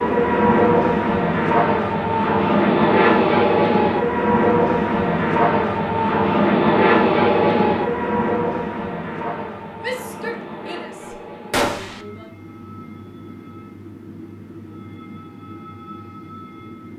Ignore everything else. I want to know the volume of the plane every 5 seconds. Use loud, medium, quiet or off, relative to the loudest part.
loud, loud, quiet, quiet.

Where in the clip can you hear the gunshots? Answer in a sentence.
You can hear the gunshots from 11.5 to 12.0 s.